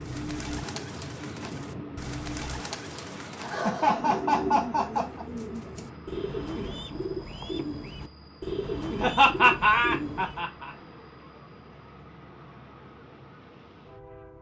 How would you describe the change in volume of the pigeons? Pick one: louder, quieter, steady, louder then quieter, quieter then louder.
louder.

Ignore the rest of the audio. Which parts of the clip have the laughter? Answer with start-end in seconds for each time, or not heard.
3.4-5.2, 9.0-10.4.